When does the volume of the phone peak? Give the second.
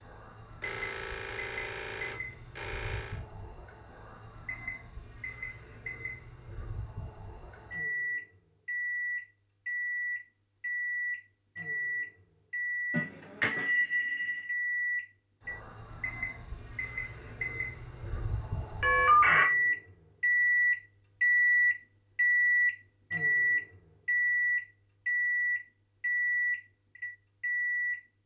19 s.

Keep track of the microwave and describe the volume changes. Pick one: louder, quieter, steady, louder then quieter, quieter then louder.
louder.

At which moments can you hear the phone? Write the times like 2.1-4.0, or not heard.
0.6-3.2, 12.9-14.4, 18.8-19.4.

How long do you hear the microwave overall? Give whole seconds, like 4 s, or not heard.
28 s.